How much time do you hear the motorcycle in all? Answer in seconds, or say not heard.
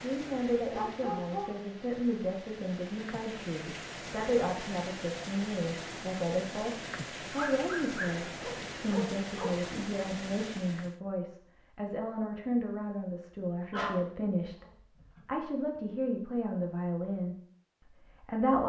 not heard.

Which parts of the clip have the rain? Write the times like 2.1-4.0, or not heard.
0.0-11.0.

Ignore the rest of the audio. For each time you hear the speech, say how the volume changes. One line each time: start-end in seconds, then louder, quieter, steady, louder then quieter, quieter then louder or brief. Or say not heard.
0.0-18.6 steady.